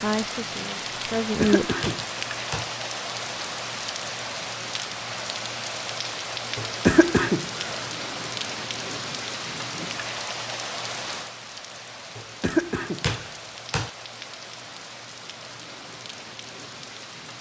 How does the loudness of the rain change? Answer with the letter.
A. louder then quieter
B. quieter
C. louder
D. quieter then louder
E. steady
B.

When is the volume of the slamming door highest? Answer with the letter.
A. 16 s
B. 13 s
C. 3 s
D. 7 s
B.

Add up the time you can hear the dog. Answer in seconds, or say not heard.
not heard.